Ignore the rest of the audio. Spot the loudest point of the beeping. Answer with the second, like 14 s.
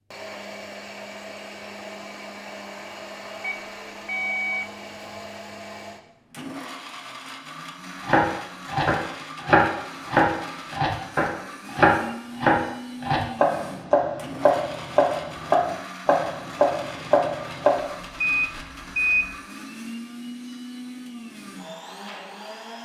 19 s.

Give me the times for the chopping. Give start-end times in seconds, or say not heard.
8.1-17.8.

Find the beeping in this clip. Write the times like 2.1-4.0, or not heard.
3.4-4.7, 18.0-19.4.